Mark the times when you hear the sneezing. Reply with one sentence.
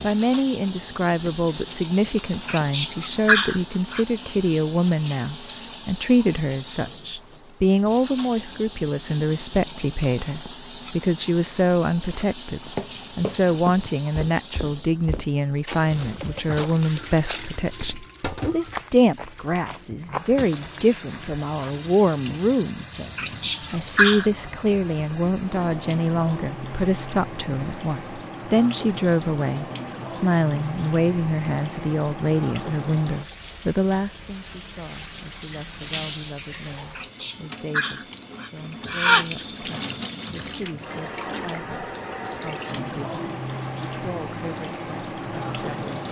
The sneezing can be heard from 2.5 to 4.0 s, from 23.1 to 24.3 s and from 37.0 to 39.5 s.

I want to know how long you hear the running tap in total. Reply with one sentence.
You can hear the running tap for 46 seconds altogether.